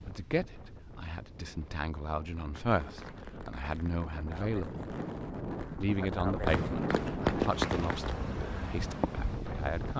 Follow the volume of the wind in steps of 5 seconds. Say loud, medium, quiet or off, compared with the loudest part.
medium, loud.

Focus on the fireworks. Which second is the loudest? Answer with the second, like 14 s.
7 s.